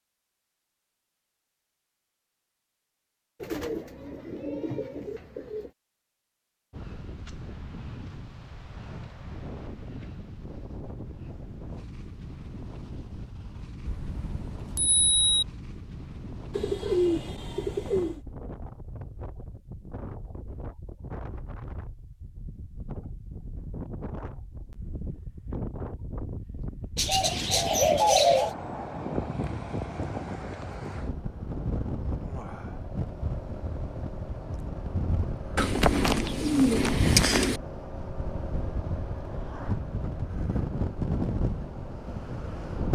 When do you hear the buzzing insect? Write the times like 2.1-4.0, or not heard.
not heard.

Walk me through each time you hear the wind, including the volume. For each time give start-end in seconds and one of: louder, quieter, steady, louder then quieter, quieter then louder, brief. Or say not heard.
6.7-42.9 louder.